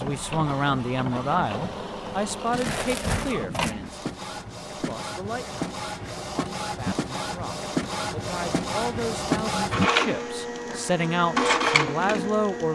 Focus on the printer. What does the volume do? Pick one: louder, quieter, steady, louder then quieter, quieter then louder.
louder.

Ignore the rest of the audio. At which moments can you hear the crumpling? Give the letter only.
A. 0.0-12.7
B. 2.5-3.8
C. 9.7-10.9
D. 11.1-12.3
B.